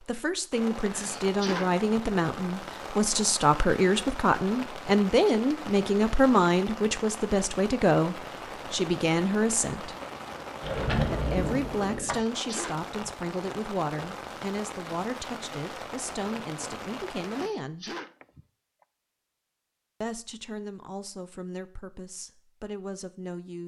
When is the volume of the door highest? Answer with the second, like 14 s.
11 s.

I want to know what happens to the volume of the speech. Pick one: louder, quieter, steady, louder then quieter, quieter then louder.
quieter.